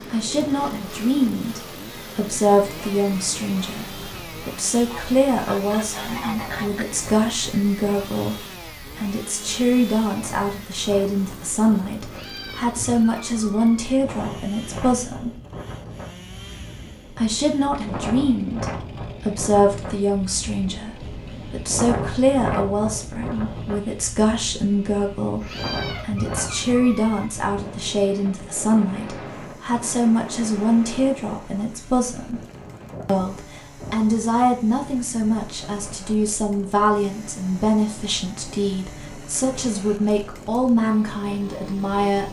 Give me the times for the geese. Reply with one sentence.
You can hear the geese from 4.8 to 6.8 s.